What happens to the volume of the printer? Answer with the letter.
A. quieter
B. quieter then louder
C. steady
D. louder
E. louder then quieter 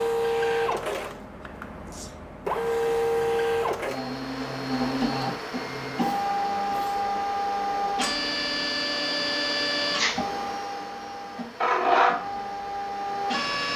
C.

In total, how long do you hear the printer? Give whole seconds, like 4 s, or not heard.
14 s.